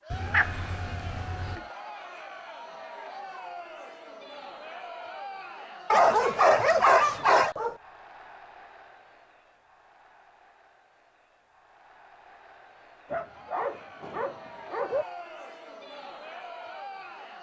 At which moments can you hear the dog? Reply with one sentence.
The dog can be heard from 0.1 to 1.6 s, from 5.9 to 7.8 s and from 13.1 to 15.1 s.